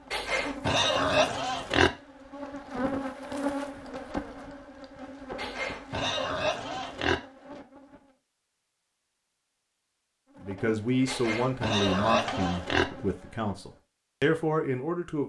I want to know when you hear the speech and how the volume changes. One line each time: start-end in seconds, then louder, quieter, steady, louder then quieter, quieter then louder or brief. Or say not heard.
10.4-15.2 quieter then louder.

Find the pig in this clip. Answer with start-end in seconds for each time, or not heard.
0.1-1.9, 5.3-7.2, 11.1-12.8.